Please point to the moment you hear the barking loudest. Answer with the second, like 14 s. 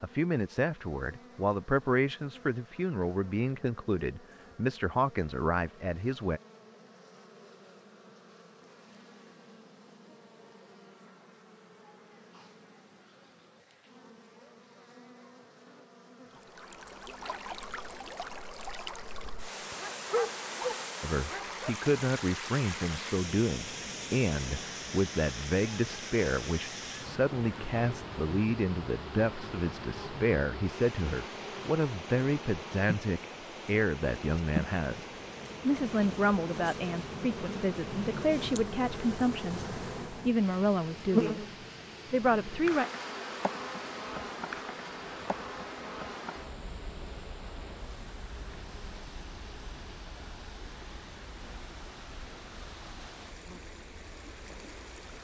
20 s.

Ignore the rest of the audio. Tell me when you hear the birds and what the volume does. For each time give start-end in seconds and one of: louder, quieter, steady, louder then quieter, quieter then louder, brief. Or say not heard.
not heard.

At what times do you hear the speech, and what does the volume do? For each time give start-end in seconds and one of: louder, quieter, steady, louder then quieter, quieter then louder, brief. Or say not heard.
0.0-6.4 steady
21.0-42.9 steady.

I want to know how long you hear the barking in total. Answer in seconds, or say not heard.
2 s.